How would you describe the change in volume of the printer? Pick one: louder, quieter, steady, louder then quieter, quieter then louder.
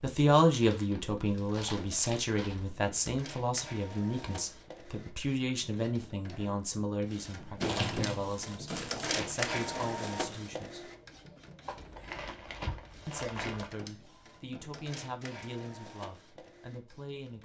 louder then quieter.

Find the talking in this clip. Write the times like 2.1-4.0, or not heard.
0.0-10.8, 13.1-17.3.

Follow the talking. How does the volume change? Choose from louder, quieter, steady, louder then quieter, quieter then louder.
quieter.